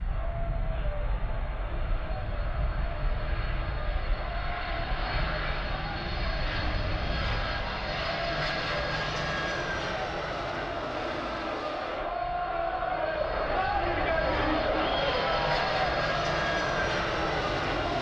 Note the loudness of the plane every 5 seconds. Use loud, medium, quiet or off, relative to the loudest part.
medium, loud, medium, loud.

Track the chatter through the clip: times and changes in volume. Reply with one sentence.
You can hear the chatter from 0.0 to 17.9 s, getting louder.